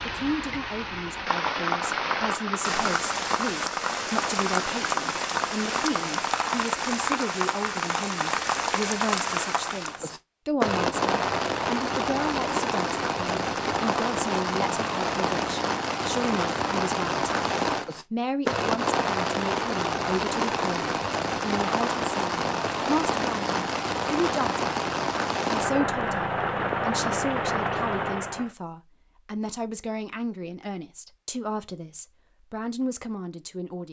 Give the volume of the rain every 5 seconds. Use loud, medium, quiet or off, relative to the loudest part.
loud, loud, loud, loud, loud, loud, off.